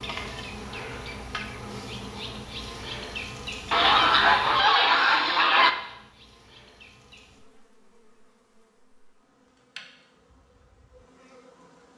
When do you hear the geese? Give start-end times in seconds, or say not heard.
3.7-5.7.